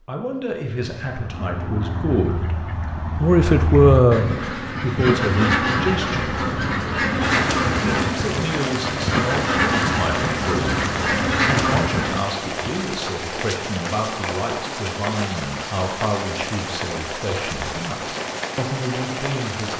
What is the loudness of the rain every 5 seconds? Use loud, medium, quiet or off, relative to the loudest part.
off, loud, loud, loud.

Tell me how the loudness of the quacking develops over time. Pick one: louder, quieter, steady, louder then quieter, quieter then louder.
louder.